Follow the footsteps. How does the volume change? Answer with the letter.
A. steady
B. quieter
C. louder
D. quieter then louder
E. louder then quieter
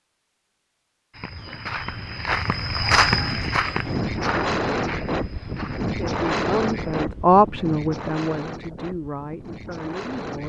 E.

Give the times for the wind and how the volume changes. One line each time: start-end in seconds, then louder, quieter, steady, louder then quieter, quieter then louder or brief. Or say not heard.
3.1-10.4 quieter.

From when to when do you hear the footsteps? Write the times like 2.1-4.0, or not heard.
1.1-7.0.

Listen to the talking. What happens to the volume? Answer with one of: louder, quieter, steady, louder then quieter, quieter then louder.
louder then quieter.